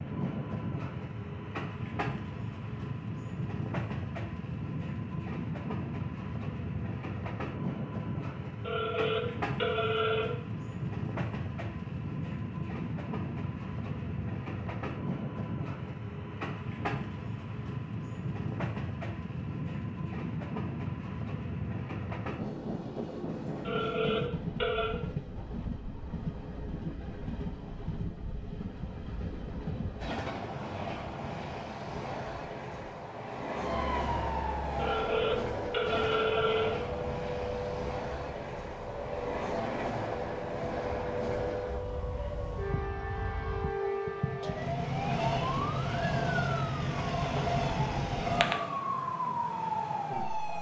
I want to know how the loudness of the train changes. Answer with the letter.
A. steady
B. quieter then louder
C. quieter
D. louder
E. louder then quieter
A.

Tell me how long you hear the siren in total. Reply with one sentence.
You can hear the siren for 17 seconds altogether.